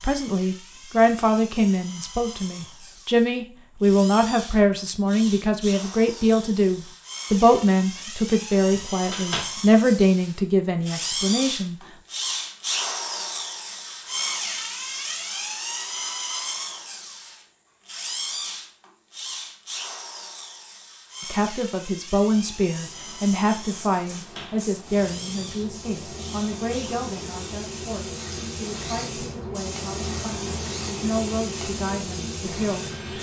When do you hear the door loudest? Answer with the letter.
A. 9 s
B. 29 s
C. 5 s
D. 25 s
A.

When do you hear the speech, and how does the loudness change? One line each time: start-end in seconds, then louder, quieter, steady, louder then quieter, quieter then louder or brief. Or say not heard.
0.0-11.8 steady
21.3-32.9 quieter then louder.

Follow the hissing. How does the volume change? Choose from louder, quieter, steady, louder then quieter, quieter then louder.
louder.